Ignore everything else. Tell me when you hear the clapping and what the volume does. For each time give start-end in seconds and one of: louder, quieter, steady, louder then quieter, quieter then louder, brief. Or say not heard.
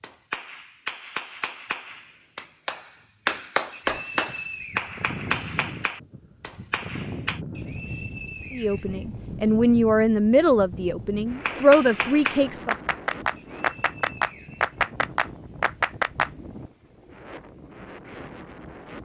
0.0-7.4 louder then quieter
11.4-16.3 louder.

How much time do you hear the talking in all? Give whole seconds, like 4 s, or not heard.
4 s.